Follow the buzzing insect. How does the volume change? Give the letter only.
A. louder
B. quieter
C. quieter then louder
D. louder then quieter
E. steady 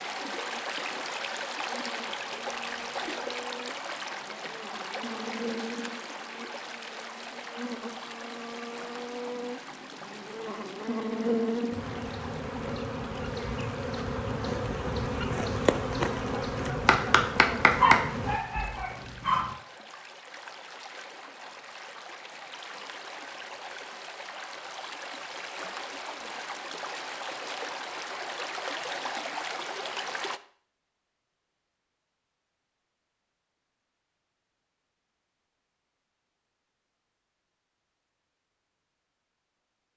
A.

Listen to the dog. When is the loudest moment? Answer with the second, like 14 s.
18 s.